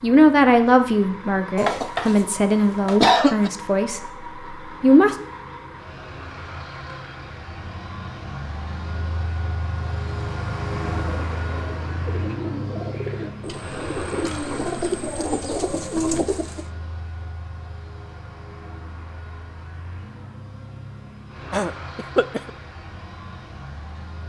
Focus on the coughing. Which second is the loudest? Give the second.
3 s.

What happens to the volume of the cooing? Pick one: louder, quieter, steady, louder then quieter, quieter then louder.
louder.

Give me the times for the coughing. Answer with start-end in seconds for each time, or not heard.
1.6-3.5, 21.5-22.5.